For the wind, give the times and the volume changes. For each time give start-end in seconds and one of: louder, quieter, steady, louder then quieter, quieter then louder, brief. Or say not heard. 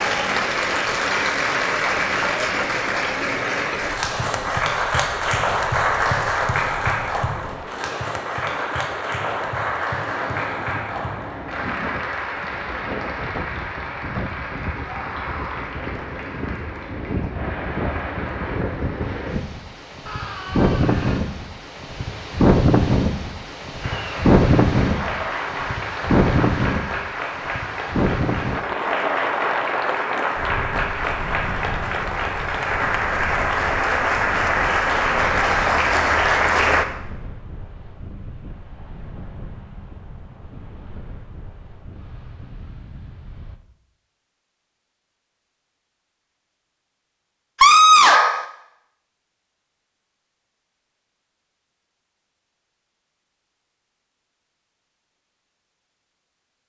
0.0-43.6 louder then quieter.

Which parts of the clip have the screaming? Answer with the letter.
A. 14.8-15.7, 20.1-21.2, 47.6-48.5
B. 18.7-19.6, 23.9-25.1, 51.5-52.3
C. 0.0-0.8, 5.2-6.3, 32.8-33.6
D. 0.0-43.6
A.